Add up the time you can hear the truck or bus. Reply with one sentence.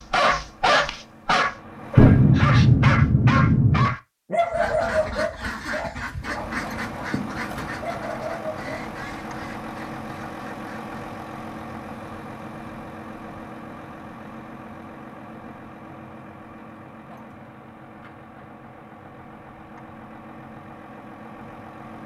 You can hear the truck or bus for 18 seconds altogether.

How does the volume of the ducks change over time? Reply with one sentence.
The loudness of the ducks goes down.